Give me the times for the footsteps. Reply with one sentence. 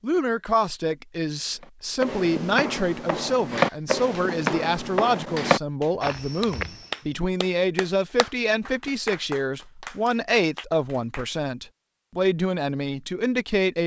You can hear the footsteps from 1.5 to 7.2 s.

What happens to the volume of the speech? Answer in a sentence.
The loudness of the speech stays about the same.